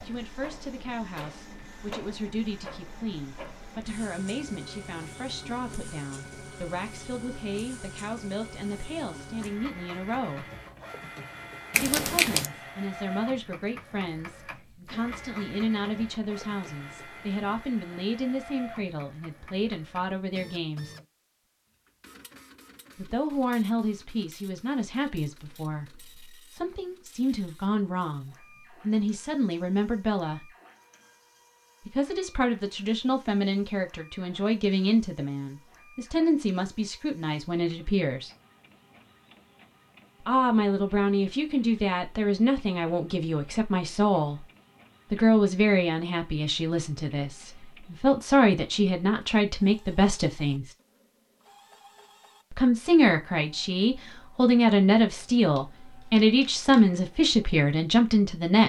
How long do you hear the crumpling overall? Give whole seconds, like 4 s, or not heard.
2 s.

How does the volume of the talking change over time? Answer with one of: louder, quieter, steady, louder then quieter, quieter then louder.
louder.